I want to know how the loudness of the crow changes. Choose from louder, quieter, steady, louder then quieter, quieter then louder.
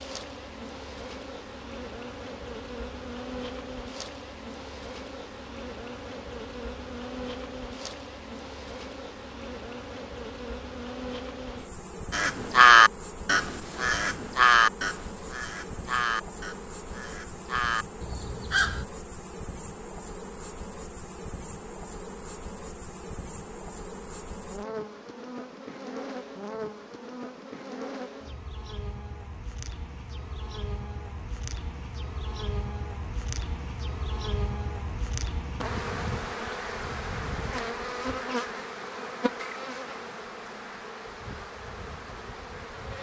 quieter.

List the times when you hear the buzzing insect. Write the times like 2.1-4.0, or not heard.
0.0-42.9.